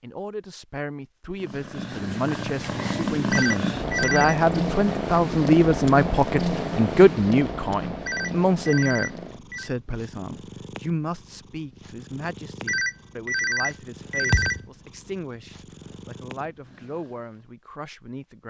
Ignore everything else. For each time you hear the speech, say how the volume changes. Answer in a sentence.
The speech can be heard from 0.0 to 18.4 s, getting louder then quieter.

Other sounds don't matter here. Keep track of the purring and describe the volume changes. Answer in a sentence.
The volume of the purring goes down.